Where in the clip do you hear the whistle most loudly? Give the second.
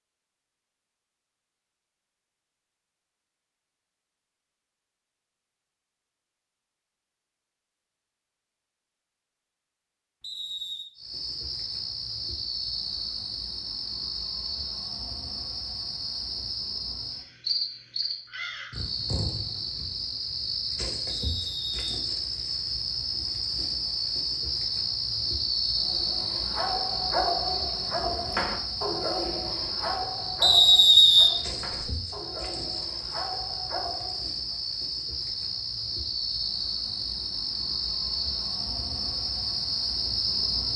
31 s.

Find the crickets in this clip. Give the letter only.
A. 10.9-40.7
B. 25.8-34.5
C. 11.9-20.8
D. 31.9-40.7
A.